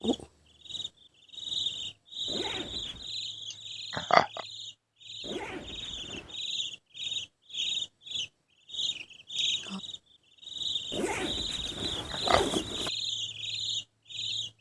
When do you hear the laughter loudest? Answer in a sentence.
The loudest moment of the laughter is at 4 seconds.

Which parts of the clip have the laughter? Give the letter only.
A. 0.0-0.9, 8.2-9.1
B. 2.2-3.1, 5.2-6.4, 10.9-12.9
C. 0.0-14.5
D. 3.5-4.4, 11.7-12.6
D.